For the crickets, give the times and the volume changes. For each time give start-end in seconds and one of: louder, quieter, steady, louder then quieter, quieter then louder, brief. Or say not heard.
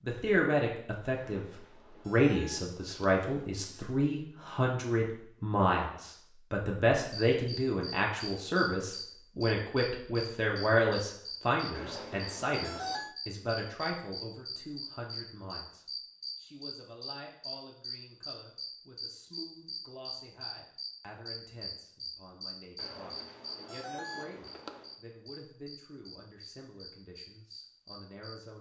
7.1-28.5 quieter.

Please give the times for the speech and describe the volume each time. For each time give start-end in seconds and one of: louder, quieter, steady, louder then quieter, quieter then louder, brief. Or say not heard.
0.0-28.5 quieter.